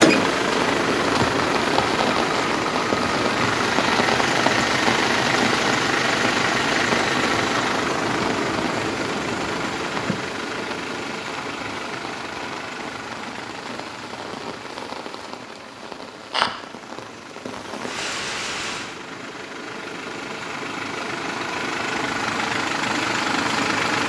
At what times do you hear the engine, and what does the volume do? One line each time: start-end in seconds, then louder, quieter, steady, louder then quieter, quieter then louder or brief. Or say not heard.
0.0-24.0 quieter then louder.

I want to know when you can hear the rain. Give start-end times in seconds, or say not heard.
0.0-18.9.